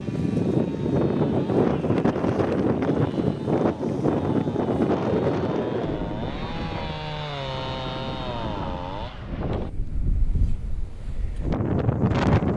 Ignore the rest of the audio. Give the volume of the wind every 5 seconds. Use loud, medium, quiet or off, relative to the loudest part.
loud, medium, loud.